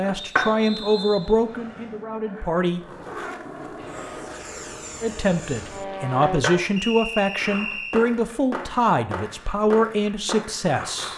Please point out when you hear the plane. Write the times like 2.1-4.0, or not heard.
3.8-6.4.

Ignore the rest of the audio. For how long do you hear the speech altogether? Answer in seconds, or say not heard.
9 s.